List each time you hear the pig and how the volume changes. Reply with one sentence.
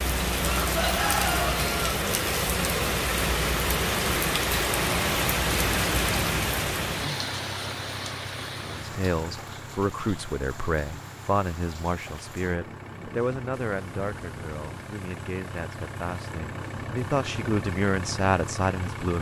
The pig can't be heard in this clip.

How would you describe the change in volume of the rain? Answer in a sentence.
The loudness of the rain goes down.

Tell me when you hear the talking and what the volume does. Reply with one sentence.
The talking can be heard from 8.7 to 19.1 s, getting quieter then louder.